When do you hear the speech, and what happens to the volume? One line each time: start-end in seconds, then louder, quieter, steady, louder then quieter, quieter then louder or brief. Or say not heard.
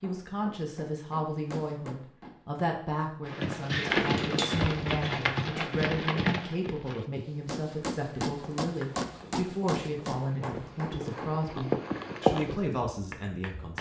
0.0-13.7 steady.